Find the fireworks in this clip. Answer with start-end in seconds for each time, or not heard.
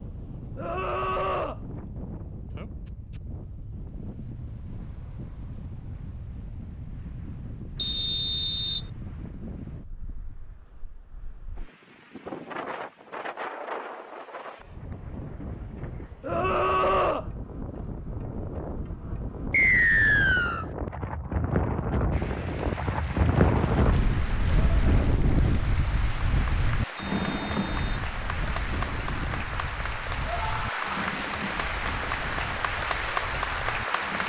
not heard.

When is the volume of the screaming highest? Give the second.
17 s.